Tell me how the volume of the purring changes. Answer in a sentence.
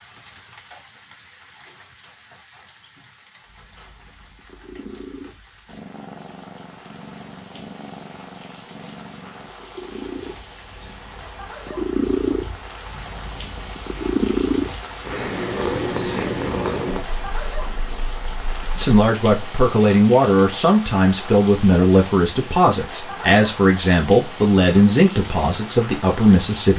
The loudness of the purring goes up.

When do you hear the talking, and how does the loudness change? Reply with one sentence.
The talking can be heard from 18.8 to 26.7 s, at a steady volume.